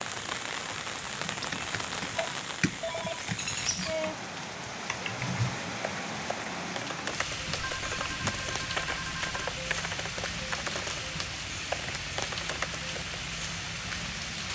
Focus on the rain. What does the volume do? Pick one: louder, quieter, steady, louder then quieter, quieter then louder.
steady.